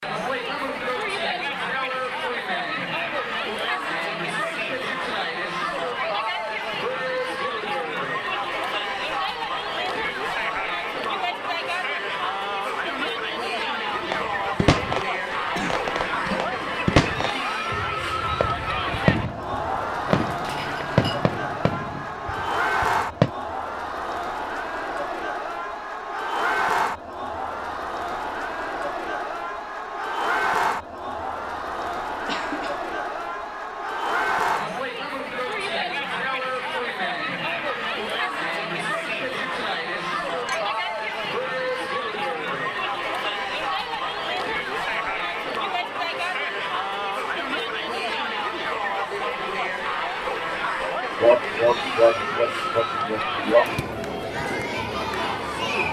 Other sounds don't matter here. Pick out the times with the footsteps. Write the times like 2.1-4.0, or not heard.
not heard.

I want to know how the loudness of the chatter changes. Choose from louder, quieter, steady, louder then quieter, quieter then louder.
steady.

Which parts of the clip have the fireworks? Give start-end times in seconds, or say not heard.
13.9-23.3.